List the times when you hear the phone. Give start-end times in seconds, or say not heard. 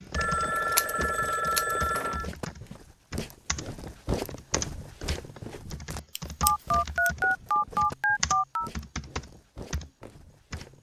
0.1-2.3, 6.4-8.7.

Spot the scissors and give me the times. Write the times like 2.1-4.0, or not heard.
0.6-2.0, 6.2-7.1.